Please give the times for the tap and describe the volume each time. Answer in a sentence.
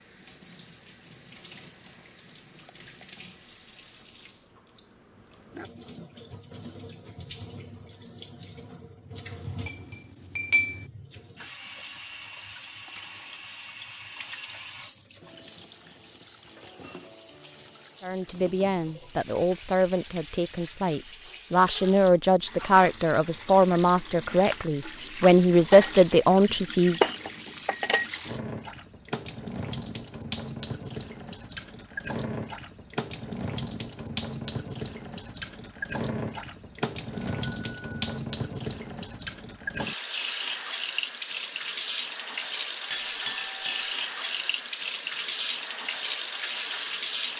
The tap can be heard from 0.0 to 47.3 s, getting louder.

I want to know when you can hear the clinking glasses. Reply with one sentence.
You can hear the clinking glasses from 9.4 to 10.8 s, from 25.7 to 28.1 s and from 42.9 to 43.9 s.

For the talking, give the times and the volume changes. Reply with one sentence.
The talking can be heard from 18.0 to 27.1 s, getting louder.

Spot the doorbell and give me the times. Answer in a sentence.
The doorbell can be heard from 37.1 to 38.2 s.